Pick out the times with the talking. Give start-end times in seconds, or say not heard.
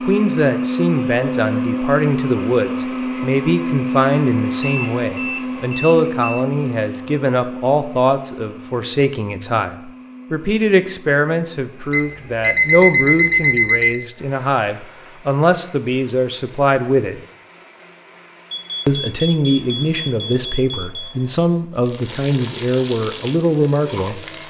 0.0-17.2, 18.9-24.2.